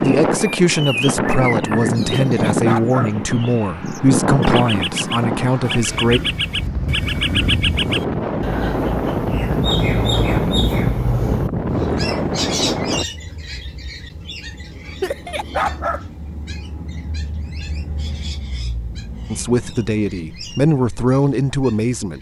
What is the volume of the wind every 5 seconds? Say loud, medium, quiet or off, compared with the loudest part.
loud, loud, loud, off, off.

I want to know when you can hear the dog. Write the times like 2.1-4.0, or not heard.
2.1-3.1, 15.0-16.1.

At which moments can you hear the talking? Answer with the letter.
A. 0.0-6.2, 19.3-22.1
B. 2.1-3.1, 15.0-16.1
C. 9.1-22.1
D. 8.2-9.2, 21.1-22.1
A.